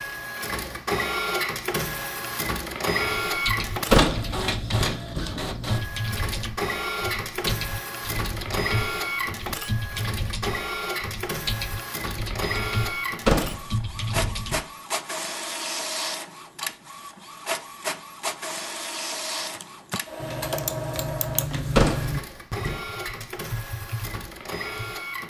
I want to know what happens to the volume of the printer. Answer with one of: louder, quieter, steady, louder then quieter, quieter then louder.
quieter.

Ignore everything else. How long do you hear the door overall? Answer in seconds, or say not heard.
4 s.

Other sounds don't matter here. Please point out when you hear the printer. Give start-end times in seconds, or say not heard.
0.0-25.2.